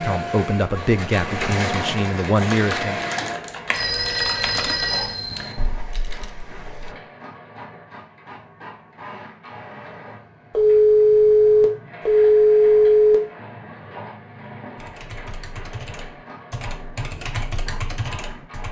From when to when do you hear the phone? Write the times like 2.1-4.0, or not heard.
3.7-5.6, 10.5-13.2.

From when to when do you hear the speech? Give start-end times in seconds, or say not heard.
0.0-3.0.